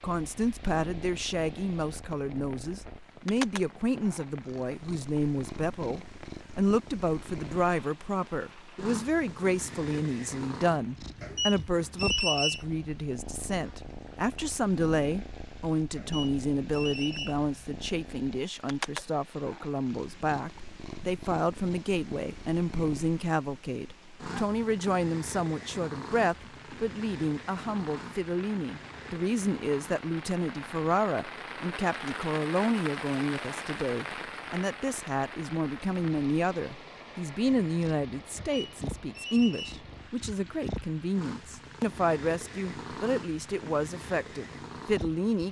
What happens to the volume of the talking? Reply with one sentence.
The loudness of the talking stays about the same.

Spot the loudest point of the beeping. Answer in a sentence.
The loudest moment of the beeping is at 12 seconds.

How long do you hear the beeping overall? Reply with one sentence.
The beeping can be heard for 4 seconds in total.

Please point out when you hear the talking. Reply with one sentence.
You can hear the talking from 0.0 to 45.4 s.